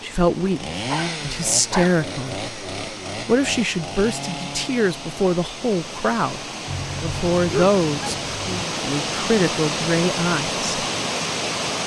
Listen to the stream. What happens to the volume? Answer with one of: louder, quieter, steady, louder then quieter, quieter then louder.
louder.